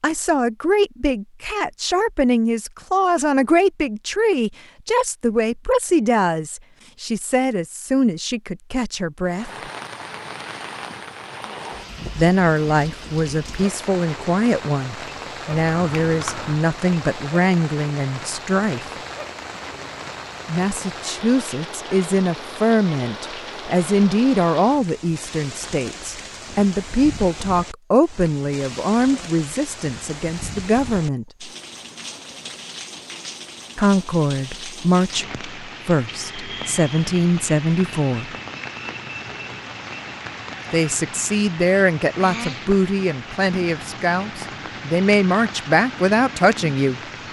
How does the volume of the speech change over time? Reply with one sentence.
The loudness of the speech stays about the same.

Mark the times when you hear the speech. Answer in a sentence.
You can hear the speech from 0.0 to 9.5 s, from 12.2 to 18.9 s, from 20.4 to 31.2 s, from 33.8 to 38.4 s and from 40.7 to 47.0 s.